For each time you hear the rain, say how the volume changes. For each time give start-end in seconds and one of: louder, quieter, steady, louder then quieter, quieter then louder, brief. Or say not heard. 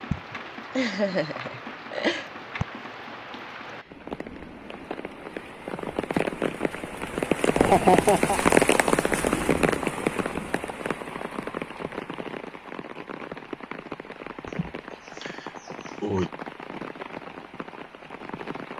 0.0-18.7 louder then quieter.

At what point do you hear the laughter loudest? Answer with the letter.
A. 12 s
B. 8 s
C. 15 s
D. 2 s
B.